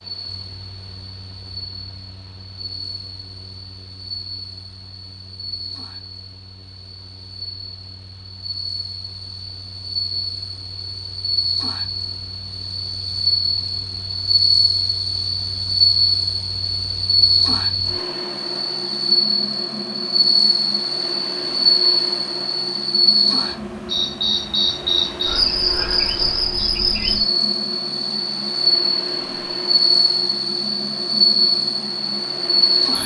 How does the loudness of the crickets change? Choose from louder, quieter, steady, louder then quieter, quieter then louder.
louder.